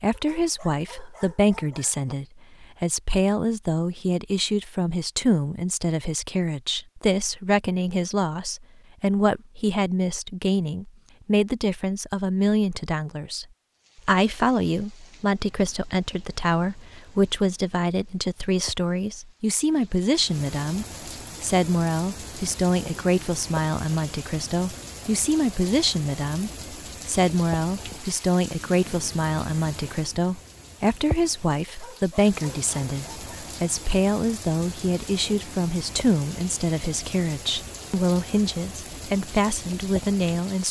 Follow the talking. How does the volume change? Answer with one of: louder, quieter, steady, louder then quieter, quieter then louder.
steady.